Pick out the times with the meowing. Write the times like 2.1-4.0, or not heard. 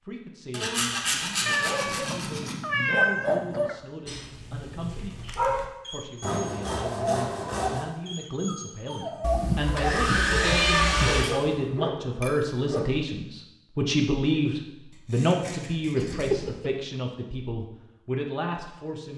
1.4-3.8, 9.2-11.2, 15.9-16.7.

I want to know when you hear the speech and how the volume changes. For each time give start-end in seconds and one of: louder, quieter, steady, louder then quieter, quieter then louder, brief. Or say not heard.
0.1-5.2 steady
5.9-19.1 louder then quieter.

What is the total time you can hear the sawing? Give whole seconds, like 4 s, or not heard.
7 s.